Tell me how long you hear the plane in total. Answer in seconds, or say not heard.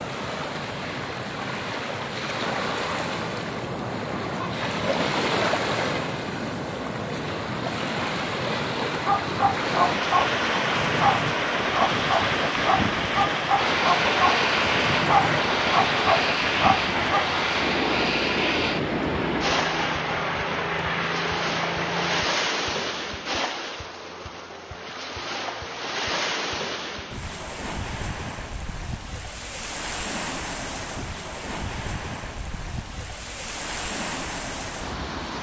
9 s.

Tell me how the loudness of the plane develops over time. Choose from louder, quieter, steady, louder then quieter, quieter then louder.
steady.